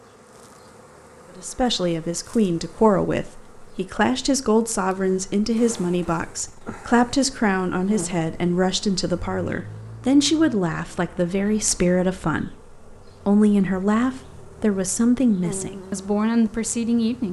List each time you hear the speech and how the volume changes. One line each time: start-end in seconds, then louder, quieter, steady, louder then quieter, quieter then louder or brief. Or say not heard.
1.4-17.2 steady.